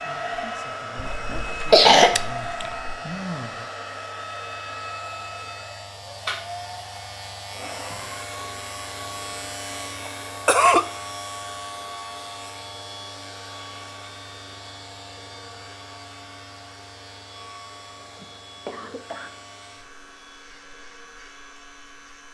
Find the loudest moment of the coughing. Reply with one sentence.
The loudest moment of the coughing is at 2 seconds.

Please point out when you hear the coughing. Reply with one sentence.
You can hear the coughing from 0.9 to 3.0 s, from 10.1 to 10.8 s and from 18.0 to 19.3 s.